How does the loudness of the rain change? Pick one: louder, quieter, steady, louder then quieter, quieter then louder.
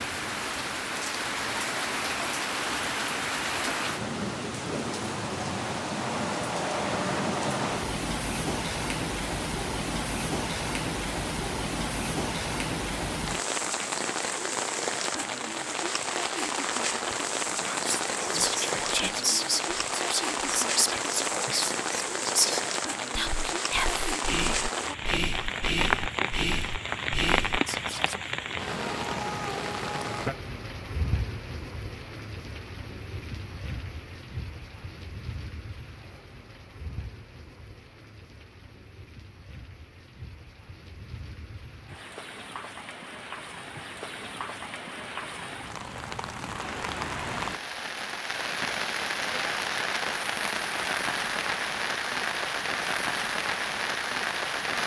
quieter then louder.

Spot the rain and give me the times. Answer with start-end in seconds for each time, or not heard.
0.0-54.8.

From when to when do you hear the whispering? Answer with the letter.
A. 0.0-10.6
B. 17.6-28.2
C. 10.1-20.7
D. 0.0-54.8
B.